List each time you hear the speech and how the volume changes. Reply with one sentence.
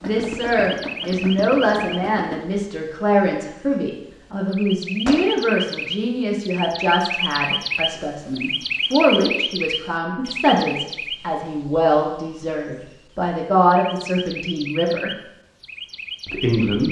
The speech can be heard from 0.0 to 15.1 s, at a steady volume; and briefly from 16.2 to 16.8 s.